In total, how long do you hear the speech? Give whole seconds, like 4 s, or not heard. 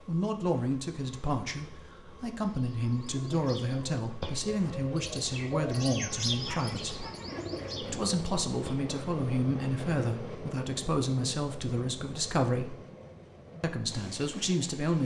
13 s.